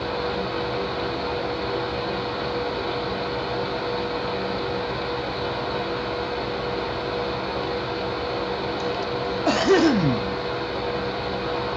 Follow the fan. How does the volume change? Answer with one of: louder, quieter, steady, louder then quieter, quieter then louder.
steady.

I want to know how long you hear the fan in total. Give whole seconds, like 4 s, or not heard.
12 s.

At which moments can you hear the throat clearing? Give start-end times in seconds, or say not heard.
8.8-10.2.